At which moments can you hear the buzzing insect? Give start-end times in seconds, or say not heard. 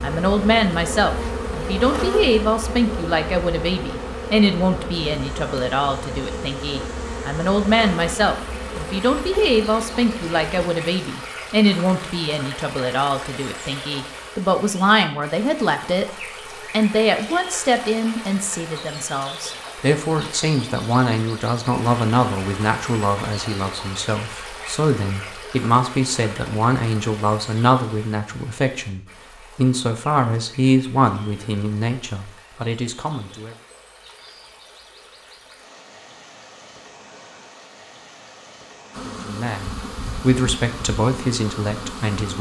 0.0-10.7, 38.9-42.3.